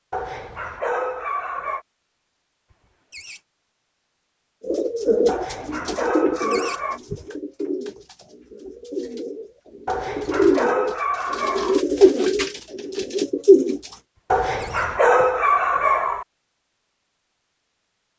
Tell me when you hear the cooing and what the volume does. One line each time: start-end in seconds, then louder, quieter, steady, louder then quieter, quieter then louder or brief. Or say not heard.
4.6-13.9 quieter then louder.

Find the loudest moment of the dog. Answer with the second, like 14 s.
15 s.